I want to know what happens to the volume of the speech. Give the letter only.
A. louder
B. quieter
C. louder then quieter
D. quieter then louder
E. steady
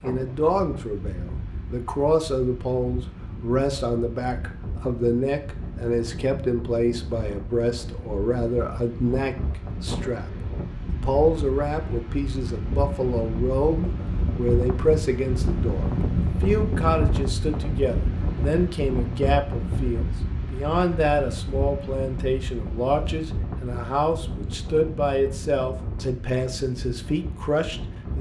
E.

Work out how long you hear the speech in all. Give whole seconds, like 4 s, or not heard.
28 s.